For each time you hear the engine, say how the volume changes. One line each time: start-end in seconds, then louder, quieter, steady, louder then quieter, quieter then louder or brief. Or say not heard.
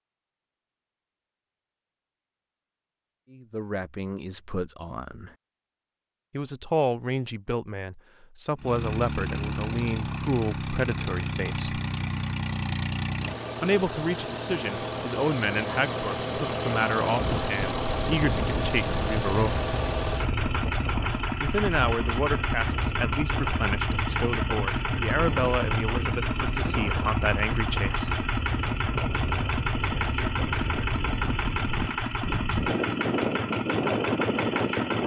8.6-35.0 steady.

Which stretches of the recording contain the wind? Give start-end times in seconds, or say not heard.
17.1-35.0.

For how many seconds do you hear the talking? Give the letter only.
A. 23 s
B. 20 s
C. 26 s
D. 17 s
B.